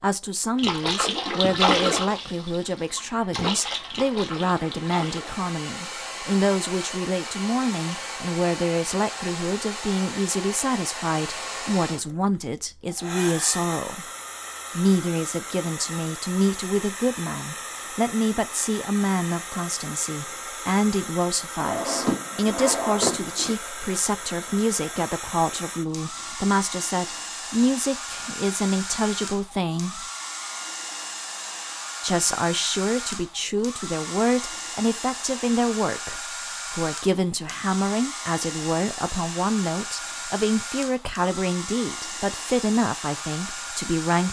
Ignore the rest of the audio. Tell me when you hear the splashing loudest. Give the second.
2 s.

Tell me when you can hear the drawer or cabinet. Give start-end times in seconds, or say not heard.
21.6-23.6.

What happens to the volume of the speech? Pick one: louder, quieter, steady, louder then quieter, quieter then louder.
steady.